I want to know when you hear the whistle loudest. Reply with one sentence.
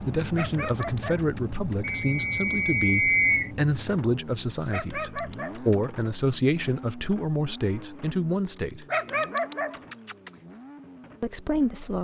The volume of the whistle peaks at 3 seconds.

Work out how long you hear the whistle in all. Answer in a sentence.
The whistle can be heard for 2 seconds in total.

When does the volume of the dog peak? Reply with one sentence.
The loudest moment of the dog is at 9 seconds.